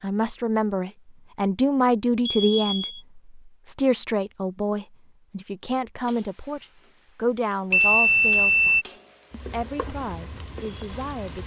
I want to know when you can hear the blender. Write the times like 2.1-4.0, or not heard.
not heard.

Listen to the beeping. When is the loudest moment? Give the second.
8 s.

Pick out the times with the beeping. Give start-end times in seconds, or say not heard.
2.2-3.0, 7.7-8.8.